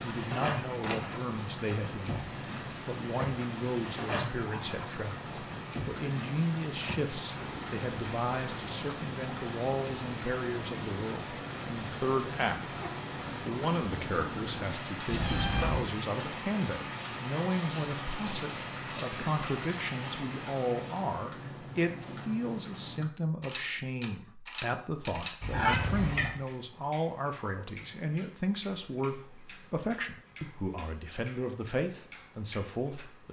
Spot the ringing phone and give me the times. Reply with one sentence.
You can't hear the ringing phone here.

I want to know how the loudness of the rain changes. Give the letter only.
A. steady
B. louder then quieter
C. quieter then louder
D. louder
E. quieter
A.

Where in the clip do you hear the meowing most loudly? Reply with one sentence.
The volume of the meowing peaks at 26 seconds.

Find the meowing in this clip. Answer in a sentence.
You can hear the meowing from 0.3 to 1.0 s, from 15.1 to 15.8 s and from 25.4 to 26.4 s.